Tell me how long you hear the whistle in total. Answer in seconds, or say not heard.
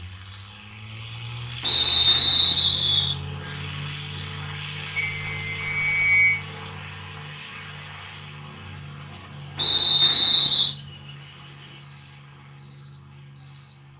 4 s.